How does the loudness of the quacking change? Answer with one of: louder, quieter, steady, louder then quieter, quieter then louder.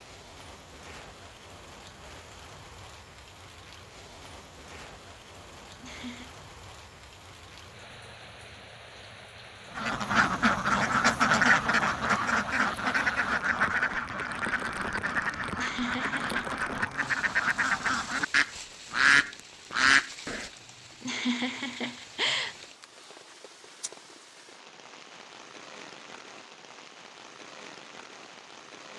quieter then louder.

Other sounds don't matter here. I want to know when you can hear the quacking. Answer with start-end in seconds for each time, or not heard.
9.8-20.4.